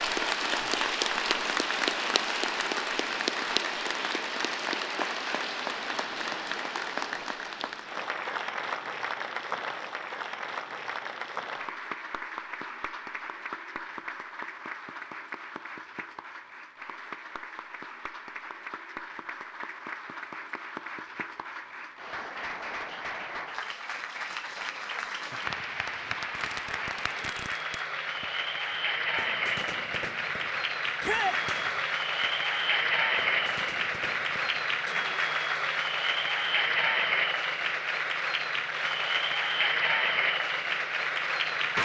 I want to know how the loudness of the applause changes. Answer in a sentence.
The loudness of the applause goes down, then up.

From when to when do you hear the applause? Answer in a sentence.
You can hear the applause from 0.0 to 41.8 s.